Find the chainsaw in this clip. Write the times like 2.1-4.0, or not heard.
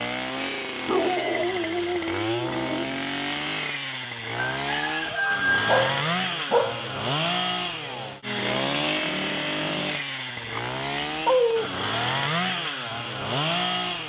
0.0-14.0.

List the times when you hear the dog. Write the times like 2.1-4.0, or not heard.
0.8-2.9, 5.7-6.9, 10.3-11.8.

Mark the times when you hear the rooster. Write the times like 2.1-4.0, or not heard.
4.3-5.9.